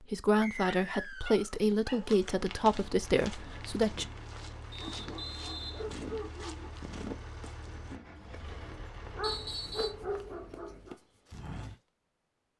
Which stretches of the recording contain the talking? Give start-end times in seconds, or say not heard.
0.0-4.0.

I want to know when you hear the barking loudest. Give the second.
10 s.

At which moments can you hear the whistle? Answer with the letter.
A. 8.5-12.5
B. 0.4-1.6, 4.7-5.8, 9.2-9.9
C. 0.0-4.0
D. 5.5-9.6
B.